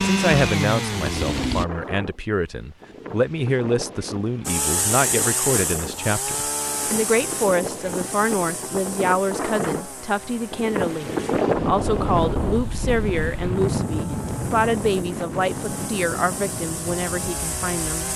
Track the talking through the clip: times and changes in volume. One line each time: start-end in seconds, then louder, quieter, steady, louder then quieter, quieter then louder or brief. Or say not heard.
0.0-18.1 steady.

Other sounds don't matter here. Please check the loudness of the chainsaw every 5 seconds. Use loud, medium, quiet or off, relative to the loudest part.
loud, medium, quiet, medium.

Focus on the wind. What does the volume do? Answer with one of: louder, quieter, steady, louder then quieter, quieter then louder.
louder then quieter.